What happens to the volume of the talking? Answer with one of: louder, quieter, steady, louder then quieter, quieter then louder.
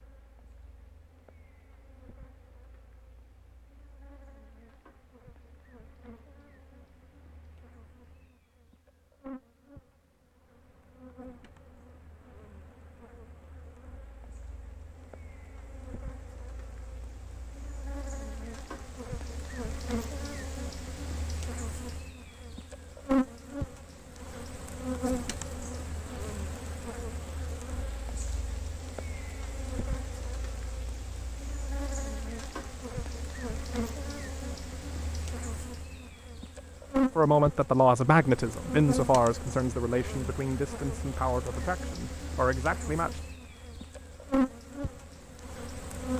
quieter.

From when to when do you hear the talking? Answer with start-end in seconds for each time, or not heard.
37.1-43.2.